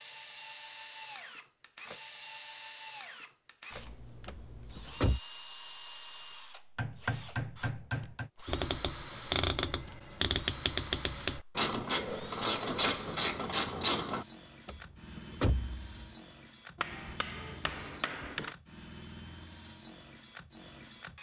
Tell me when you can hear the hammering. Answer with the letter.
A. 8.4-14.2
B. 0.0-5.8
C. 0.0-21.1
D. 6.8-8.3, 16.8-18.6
D.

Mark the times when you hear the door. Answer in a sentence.
The door can be heard from 4.2 to 5.2 s and from 14.7 to 16.1 s.